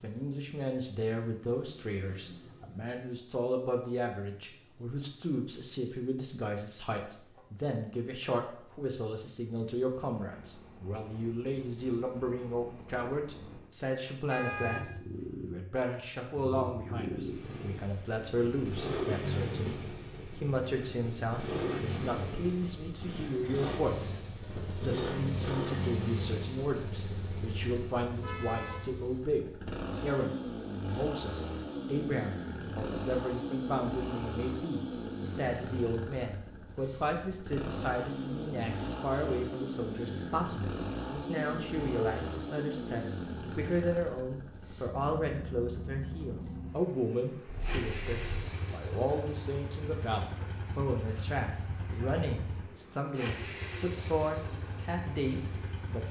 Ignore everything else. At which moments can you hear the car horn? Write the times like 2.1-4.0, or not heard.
14.3-14.8, 28.2-28.9, 47.5-48.6.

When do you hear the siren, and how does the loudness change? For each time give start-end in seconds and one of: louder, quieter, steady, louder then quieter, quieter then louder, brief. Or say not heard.
not heard.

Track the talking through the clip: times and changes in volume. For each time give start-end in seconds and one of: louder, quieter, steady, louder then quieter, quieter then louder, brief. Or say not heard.
0.0-56.0 steady.